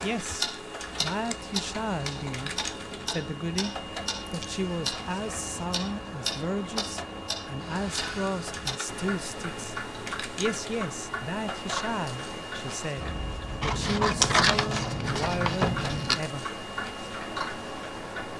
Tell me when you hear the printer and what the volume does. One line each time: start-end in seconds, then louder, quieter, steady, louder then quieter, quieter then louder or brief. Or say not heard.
0.0-18.3 steady.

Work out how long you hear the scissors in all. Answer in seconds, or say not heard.
4 s.